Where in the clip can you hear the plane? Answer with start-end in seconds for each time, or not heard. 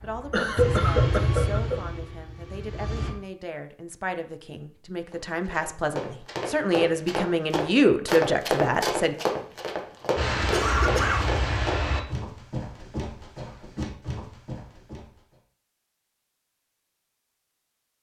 0.0-3.1, 10.2-12.1.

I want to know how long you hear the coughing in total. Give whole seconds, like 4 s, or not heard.
2 s.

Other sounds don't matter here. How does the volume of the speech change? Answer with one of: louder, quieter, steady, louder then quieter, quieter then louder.
louder.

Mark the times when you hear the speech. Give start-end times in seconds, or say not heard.
0.0-9.2.